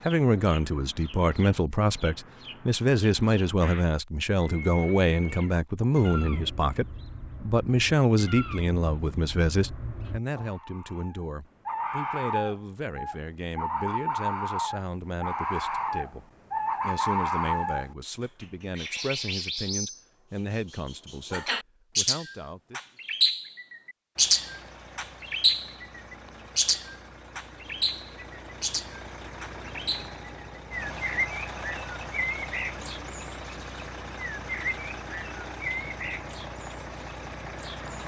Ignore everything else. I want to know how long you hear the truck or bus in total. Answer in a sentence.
The truck or bus can be heard for 14 seconds in total.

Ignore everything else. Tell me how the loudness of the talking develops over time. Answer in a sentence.
The volume of the talking goes down.